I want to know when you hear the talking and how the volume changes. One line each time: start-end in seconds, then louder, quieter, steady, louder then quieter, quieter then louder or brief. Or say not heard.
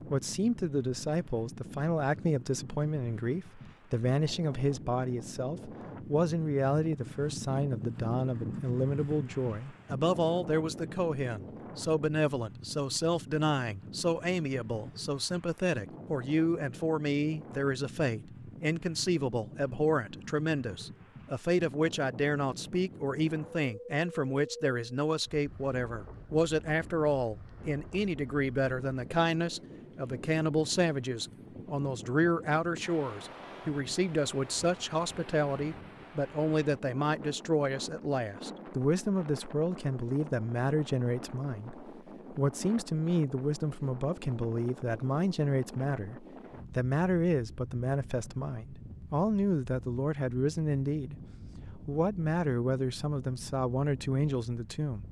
0.0-55.0 steady.